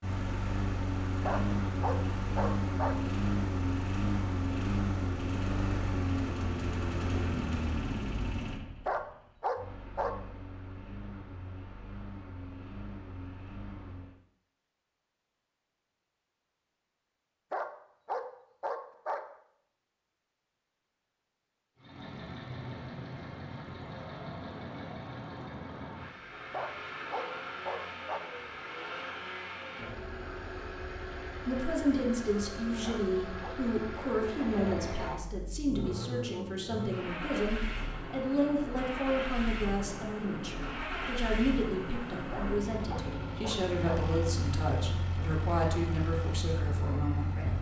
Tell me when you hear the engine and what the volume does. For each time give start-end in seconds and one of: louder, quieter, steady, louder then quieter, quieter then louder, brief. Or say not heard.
0.0-14.2 quieter
21.8-47.5 steady.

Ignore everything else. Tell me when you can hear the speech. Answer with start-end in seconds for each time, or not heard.
31.4-47.5.